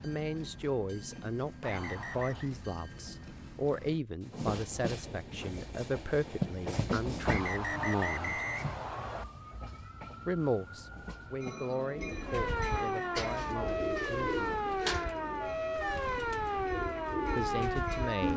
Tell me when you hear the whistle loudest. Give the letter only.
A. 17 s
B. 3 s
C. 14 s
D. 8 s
D.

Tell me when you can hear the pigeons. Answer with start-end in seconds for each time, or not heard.
11.9-18.3.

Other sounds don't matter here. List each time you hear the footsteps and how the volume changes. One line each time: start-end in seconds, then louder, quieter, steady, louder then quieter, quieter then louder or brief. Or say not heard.
not heard.